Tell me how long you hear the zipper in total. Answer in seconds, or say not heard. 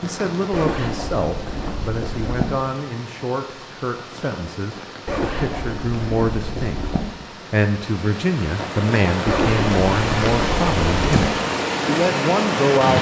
6 s.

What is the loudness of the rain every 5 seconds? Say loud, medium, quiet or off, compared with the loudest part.
quiet, medium, loud.